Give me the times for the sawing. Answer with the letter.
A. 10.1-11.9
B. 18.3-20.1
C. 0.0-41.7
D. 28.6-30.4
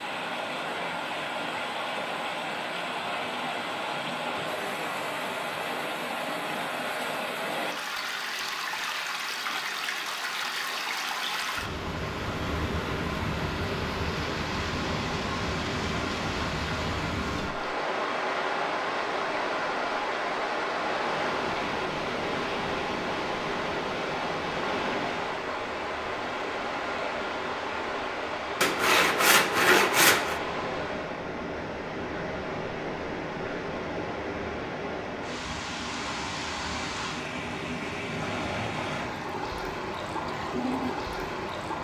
D.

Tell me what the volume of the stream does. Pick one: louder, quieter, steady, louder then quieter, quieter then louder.
steady.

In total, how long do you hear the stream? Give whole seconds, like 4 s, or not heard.
42 s.